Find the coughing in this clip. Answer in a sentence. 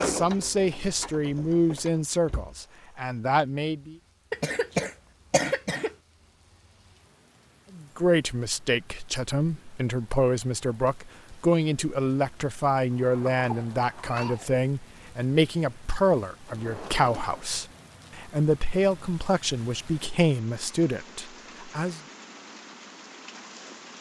The coughing can be heard from 4.3 to 5.9 s and from 13.3 to 14.6 s.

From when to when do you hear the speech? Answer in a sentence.
The speech can be heard from 0.0 to 4.0 s and from 7.8 to 22.0 s.